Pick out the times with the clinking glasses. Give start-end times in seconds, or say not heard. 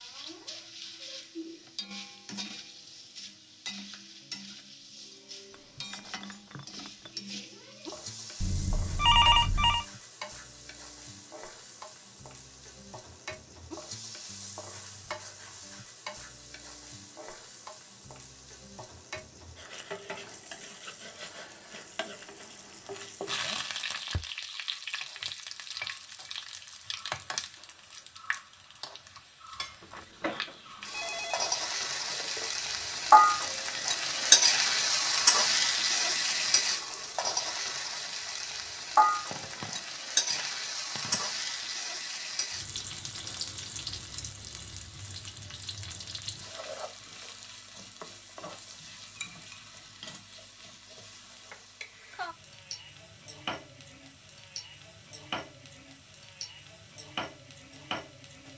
5.5-7.2, 31.9-32.5, 48.9-50.2.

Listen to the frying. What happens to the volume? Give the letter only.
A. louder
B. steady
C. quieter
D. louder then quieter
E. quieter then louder
D.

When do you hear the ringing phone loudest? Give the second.
9 s.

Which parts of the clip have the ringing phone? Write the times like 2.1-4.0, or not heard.
8.4-9.8, 29.8-31.6, 39.3-41.3.